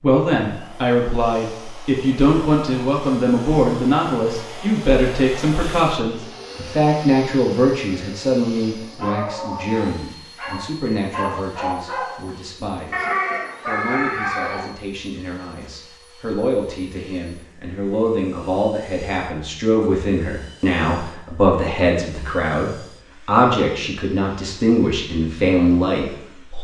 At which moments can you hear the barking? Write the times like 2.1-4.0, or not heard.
8.8-14.7.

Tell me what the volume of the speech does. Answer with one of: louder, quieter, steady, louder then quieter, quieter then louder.
quieter then louder.